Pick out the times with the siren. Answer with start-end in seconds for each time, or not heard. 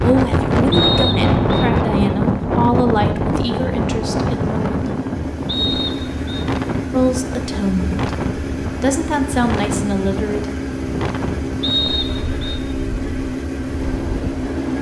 not heard.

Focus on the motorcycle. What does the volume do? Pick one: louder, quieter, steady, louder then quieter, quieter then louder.
louder.